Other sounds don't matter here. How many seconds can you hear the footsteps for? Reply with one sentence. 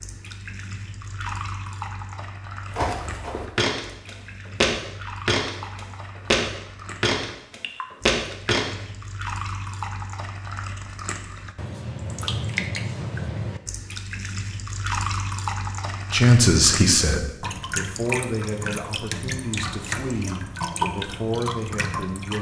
The footsteps can be heard for 6 seconds in total.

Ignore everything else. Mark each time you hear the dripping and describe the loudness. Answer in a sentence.
The dripping can be heard from 0.0 to 22.3 s, getting louder.